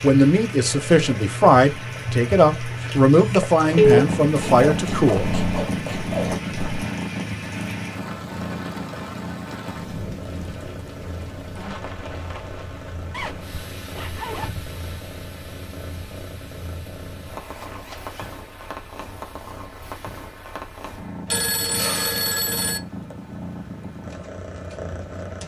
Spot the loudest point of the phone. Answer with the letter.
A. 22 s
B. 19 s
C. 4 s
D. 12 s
C.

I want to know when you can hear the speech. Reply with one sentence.
The speech can be heard from 0.0 to 5.3 s.